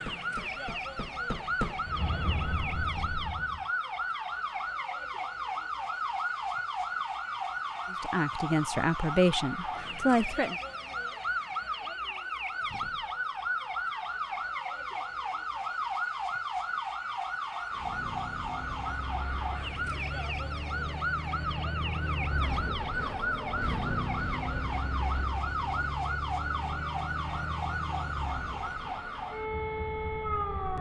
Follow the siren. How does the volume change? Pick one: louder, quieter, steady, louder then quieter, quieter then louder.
steady.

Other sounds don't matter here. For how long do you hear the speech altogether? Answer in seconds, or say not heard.
3 s.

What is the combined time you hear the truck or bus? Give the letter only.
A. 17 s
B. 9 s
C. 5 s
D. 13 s
A.